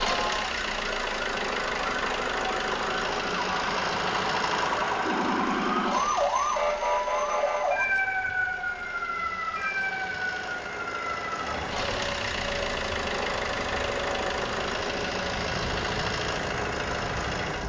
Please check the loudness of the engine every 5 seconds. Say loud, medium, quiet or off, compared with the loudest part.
loud, medium, loud, loud.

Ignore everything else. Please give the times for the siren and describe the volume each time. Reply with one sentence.
You can hear the siren from 0.0 to 17.6 s, getting louder then quieter.